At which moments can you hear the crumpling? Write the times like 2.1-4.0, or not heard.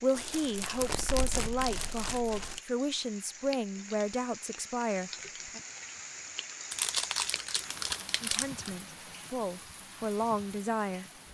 0.1-2.6, 6.7-8.7.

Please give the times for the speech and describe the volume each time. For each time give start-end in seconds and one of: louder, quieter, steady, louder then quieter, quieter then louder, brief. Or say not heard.
0.0-5.6 steady
8.2-11.1 brief.